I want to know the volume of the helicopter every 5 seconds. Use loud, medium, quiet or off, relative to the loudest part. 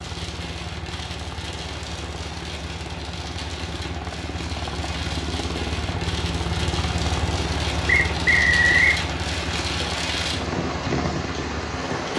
medium, loud, medium.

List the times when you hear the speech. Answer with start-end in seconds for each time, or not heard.
not heard.